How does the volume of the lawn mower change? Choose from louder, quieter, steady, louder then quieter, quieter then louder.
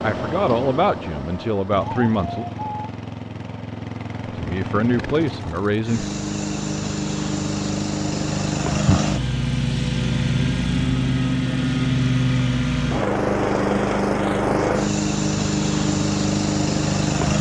louder.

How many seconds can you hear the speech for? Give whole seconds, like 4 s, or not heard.
4 s.